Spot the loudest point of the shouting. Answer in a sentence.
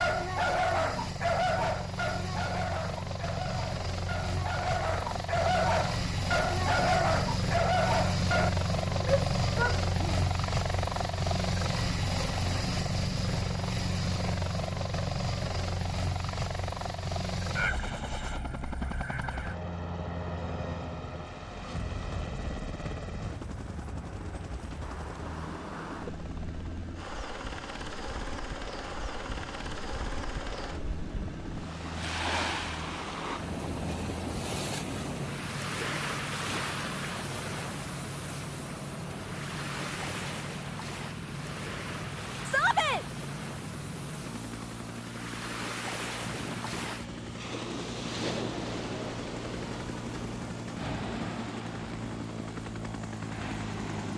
The volume of the shouting peaks at 43 seconds.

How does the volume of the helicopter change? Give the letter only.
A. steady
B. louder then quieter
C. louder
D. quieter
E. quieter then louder
D.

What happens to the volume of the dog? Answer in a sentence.
The volume of the dog goes down, then up.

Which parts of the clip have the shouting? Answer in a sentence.
The shouting can be heard from 9.0 to 10.2 s and from 42.5 to 43.0 s.